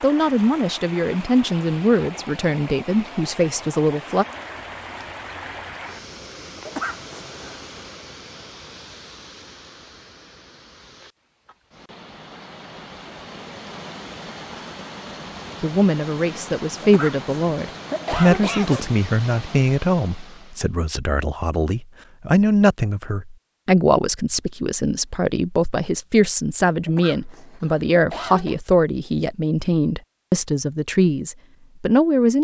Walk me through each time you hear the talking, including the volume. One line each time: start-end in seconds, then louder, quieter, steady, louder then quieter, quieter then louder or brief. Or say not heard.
0.0-4.2 steady
15.6-32.3 steady.